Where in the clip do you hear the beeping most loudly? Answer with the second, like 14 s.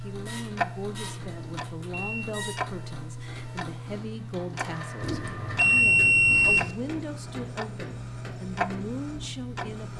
6 s.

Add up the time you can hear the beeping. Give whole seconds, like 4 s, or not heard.
3 s.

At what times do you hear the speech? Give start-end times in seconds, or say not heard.
0.0-9.9.